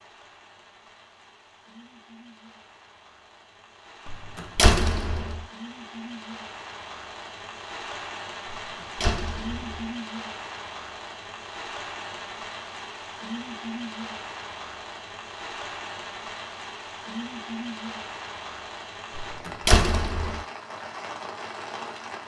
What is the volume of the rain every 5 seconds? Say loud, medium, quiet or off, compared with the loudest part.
quiet, loud, loud, loud, loud.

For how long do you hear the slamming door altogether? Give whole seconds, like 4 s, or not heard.
4 s.